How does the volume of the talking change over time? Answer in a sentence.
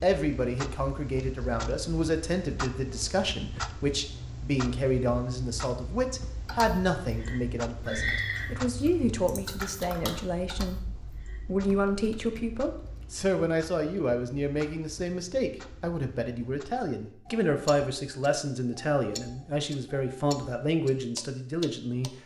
The loudness of the talking stays about the same.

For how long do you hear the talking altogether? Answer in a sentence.
You can hear the talking for 22 seconds altogether.